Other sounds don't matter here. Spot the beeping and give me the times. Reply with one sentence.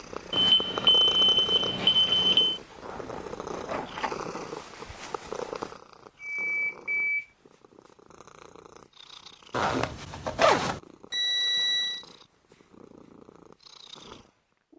The beeping can be heard from 0.3 to 2.6 s, from 6.2 to 7.2 s and from 11.1 to 12.1 s.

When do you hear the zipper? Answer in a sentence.
You can hear the zipper from 2.8 to 4.1 s and from 9.5 to 10.8 s.